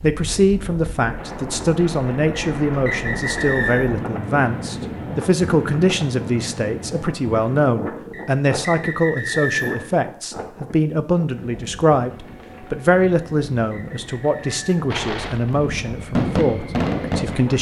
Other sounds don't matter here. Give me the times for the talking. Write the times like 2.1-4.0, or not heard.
0.0-17.5.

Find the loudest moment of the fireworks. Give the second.
16 s.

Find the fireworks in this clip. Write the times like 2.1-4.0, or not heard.
14.9-17.5.